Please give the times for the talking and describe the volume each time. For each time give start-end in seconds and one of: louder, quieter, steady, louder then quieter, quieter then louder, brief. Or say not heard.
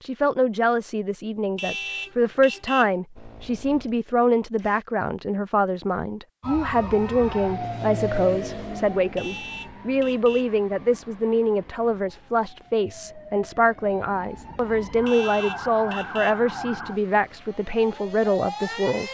0.0-19.1 steady.